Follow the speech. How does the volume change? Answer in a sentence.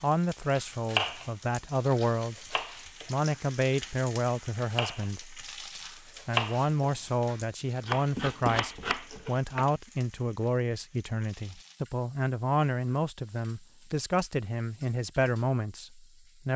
The loudness of the speech stays about the same.